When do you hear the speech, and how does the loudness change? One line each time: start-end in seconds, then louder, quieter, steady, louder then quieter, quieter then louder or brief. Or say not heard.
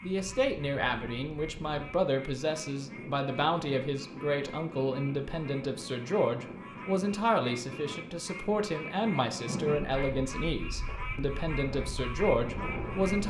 0.0-13.2 steady.